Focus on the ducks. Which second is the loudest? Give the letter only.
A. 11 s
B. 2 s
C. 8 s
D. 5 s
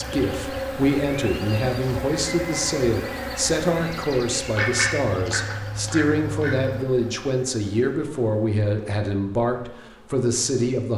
D.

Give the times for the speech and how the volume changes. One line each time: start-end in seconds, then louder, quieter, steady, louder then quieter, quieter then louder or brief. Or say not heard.
0.0-10.9 steady.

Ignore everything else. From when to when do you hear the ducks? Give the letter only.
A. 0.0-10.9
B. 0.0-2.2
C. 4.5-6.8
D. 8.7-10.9
C.